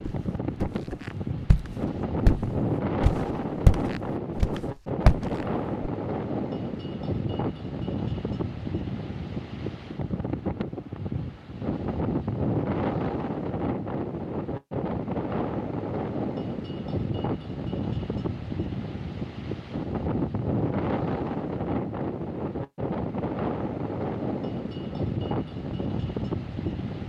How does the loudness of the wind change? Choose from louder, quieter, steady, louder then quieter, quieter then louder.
steady.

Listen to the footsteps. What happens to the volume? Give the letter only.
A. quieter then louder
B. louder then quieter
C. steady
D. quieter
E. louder
B.